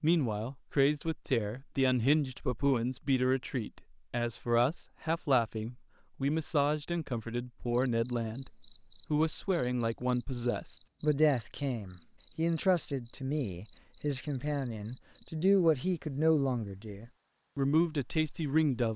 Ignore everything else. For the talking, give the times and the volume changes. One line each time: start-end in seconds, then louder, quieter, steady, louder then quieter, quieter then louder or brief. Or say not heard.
0.0-18.9 steady.